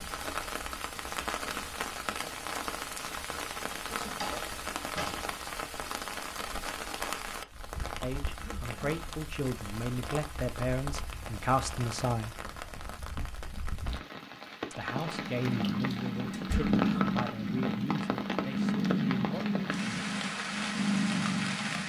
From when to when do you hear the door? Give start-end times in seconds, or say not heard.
4.0-5.3, 16.3-16.8.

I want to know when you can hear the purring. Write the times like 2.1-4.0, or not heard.
15.1-21.8.